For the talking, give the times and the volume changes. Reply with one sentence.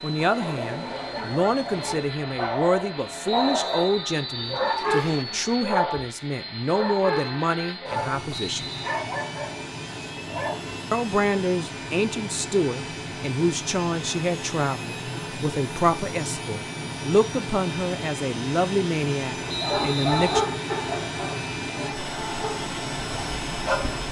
You can hear the talking from 0.0 to 8.7 s, at a steady volume; and from 10.9 to 20.4 s, at a steady volume.